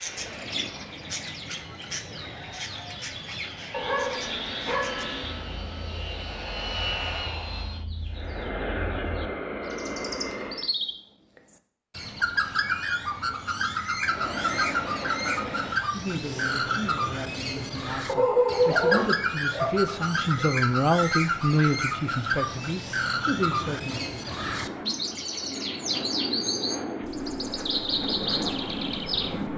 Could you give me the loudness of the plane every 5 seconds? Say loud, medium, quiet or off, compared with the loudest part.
medium, loud, loud, medium, medium, loud.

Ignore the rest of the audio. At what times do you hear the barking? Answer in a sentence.
You can hear the barking from 3.7 to 5.4 s and from 18.1 to 20.4 s.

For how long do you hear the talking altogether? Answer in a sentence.
The talking can be heard for 8 seconds in total.